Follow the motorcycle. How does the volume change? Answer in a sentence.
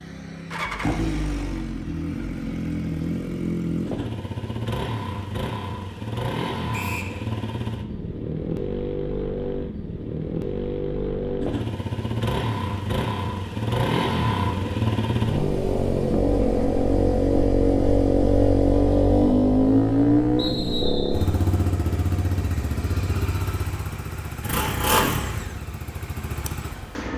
The loudness of the motorcycle goes up, then down.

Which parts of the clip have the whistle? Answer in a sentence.
You can hear the whistle from 6.7 to 7.2 s and from 20.4 to 21.2 s.